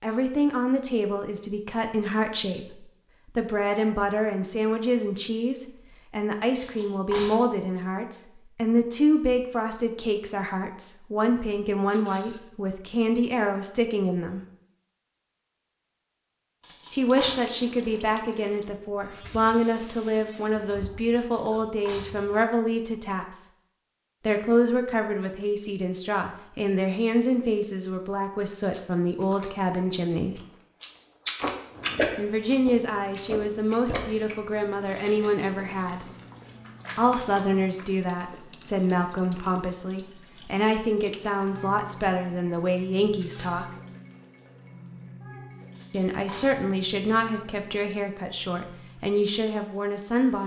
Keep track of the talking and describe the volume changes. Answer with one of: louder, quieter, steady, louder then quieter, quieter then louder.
steady.